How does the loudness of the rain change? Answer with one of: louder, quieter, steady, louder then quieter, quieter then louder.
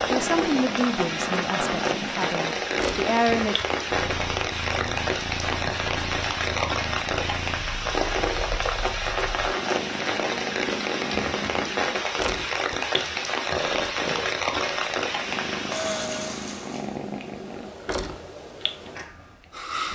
steady.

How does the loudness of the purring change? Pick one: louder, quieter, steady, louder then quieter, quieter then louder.
steady.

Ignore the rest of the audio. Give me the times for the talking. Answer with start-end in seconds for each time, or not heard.
0.1-3.5.